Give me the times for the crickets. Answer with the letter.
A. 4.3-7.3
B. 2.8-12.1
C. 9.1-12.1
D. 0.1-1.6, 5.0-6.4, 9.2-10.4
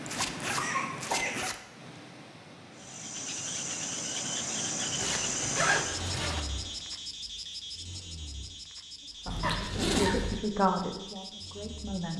B.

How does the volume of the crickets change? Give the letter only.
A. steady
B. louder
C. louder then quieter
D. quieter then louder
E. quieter
E.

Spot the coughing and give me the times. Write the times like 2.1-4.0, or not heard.
0.6-1.4, 5.4-6.4, 9.4-10.2.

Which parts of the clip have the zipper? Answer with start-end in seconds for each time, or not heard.
0.1-1.6, 5.0-6.4, 9.2-10.4.